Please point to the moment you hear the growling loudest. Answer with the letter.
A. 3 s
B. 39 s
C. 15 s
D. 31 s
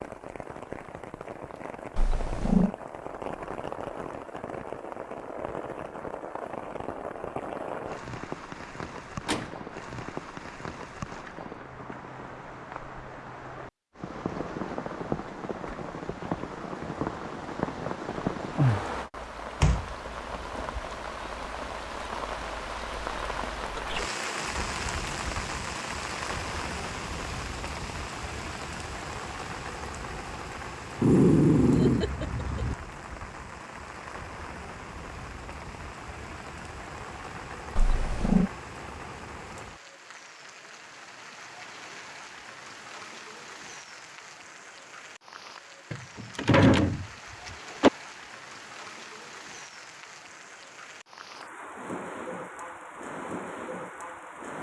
D.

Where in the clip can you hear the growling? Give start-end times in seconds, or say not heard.
1.9-2.7, 30.9-32.8, 37.8-38.5.